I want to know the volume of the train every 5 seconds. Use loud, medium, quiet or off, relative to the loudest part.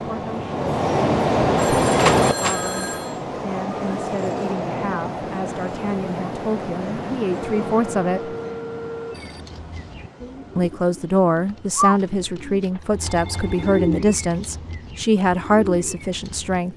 loud, medium, quiet, quiet.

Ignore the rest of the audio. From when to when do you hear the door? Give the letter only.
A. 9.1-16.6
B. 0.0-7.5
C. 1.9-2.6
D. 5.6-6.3
C.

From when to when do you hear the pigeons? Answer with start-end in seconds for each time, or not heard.
9.1-16.6.